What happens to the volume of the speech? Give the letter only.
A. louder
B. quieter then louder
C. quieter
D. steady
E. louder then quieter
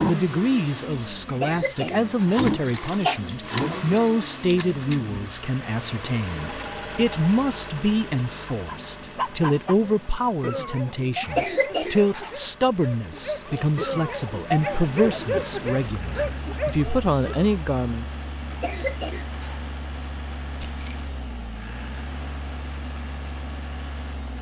D.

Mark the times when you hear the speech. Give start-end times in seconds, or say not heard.
0.0-18.1.